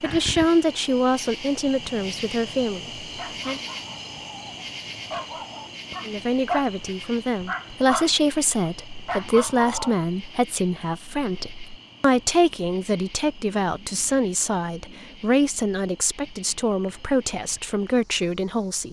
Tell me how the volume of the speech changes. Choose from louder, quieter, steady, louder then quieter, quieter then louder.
steady.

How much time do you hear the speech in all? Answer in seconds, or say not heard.
16 s.